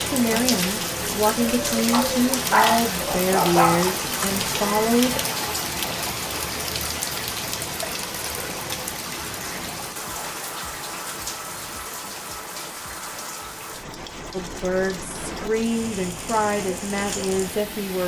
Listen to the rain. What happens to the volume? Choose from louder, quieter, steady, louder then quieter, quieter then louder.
quieter.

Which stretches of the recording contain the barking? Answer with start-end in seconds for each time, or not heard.
1.9-3.9.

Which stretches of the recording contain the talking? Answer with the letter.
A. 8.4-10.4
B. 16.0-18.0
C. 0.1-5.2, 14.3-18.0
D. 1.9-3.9
C.